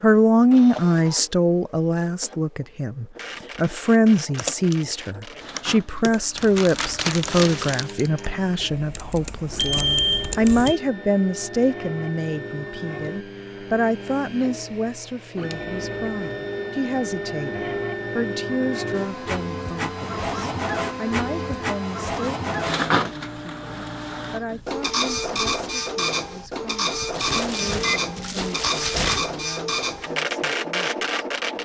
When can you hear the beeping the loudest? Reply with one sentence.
The volume of the beeping peaks at 10 seconds.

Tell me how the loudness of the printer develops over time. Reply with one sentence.
The volume of the printer goes up.